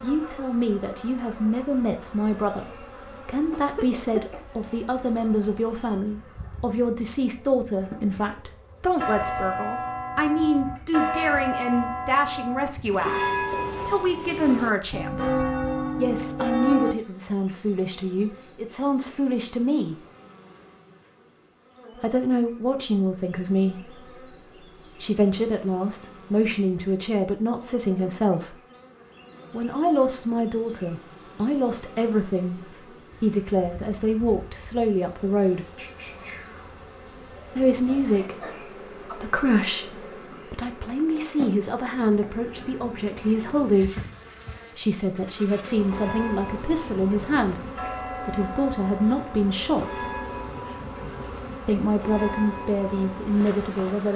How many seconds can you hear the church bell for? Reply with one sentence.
You can hear the church bell for 16 seconds altogether.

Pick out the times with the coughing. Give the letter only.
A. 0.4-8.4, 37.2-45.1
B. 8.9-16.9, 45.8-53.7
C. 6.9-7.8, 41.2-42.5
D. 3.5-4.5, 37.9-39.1
D.